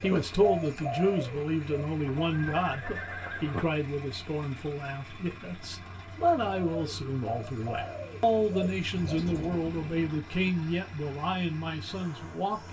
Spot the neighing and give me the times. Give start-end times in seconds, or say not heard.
2.0-3.6.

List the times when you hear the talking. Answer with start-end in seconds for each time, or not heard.
0.0-12.6.